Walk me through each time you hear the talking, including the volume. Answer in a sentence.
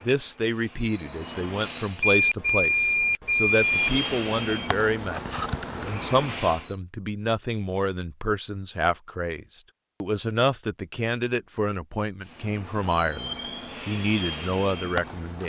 You can hear the talking from 0.1 to 15.4 s, at a steady volume.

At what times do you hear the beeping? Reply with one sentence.
You can hear the beeping from 2.0 to 3.9 s.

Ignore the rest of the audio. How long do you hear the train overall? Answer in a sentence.
You can hear the train for 9 seconds altogether.